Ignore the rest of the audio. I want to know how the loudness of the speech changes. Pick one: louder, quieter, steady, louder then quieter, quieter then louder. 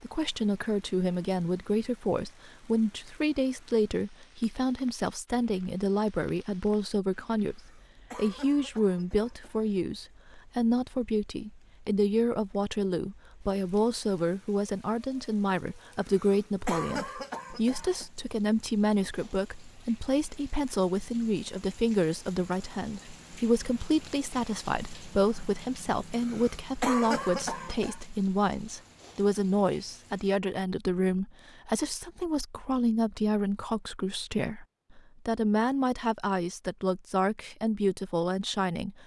steady.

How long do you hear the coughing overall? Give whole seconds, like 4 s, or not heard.
6 s.